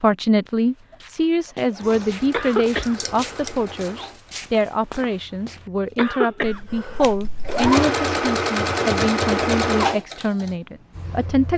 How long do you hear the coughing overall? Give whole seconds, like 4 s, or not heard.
2 s.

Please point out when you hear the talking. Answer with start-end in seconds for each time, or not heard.
0.0-11.5.